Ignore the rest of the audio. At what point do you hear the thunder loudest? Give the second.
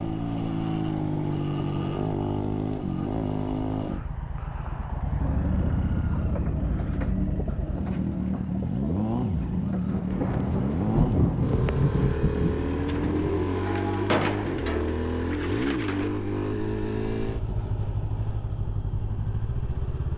11 s.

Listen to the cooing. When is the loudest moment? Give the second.
14 s.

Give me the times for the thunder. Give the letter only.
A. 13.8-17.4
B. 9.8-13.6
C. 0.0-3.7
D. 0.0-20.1
B.